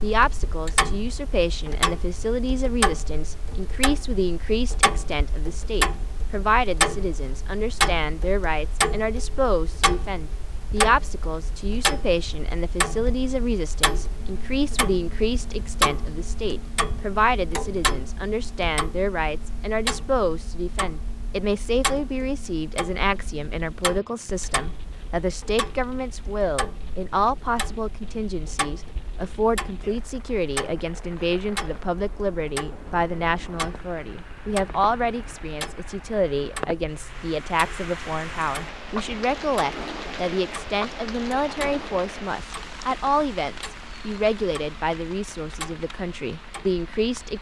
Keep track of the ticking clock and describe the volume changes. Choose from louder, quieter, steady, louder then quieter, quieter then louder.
quieter.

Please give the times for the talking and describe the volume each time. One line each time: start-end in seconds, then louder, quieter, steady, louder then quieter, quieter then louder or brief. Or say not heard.
0.0-47.3 steady.